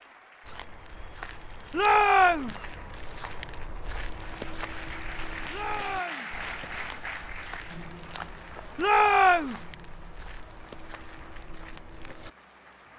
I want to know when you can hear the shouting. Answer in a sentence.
You can hear the shouting from 1.7 to 2.5 s, from 5.5 to 6.3 s and from 8.8 to 9.6 s.